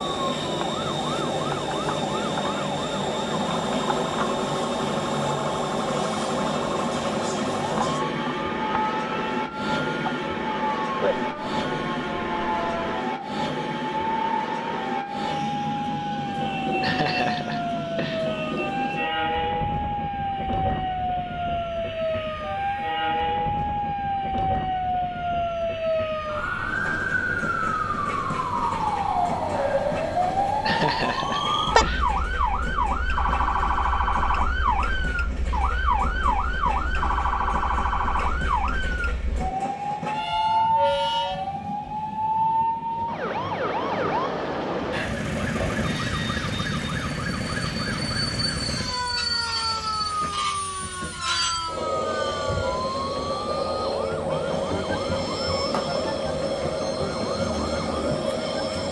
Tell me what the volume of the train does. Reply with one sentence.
The loudness of the train goes down, then up.